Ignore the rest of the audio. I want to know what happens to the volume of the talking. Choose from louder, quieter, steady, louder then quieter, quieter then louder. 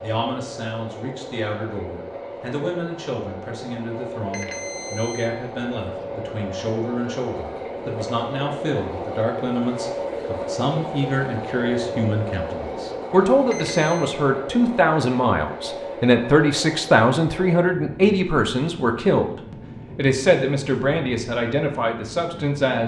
louder.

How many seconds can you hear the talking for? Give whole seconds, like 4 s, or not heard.
23 s.